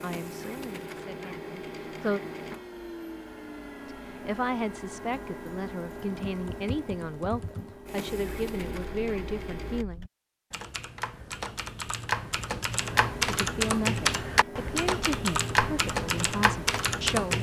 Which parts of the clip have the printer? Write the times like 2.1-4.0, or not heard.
0.0-9.8, 12.8-17.3.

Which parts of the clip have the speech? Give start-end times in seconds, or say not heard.
0.0-2.2, 3.9-10.1, 13.2-17.3.